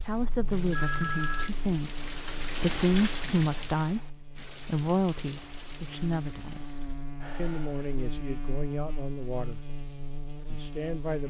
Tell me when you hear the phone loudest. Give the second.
1 s.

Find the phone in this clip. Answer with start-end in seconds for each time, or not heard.
0.7-1.5, 7.2-8.0.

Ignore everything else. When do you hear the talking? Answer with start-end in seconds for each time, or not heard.
0.0-9.6, 10.4-11.2.